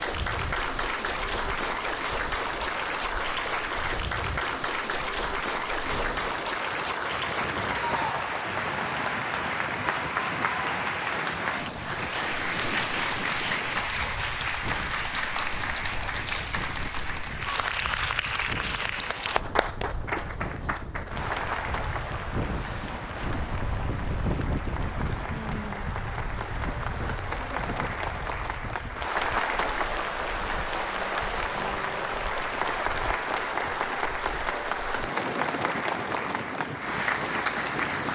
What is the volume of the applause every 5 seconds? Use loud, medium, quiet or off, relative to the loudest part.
loud, loud, loud, loud, medium, loud, loud, loud.